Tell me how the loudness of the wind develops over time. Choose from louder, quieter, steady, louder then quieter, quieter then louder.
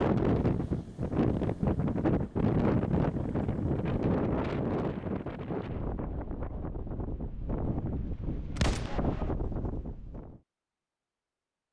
quieter.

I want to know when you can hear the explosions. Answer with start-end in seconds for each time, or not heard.
8.6-9.0.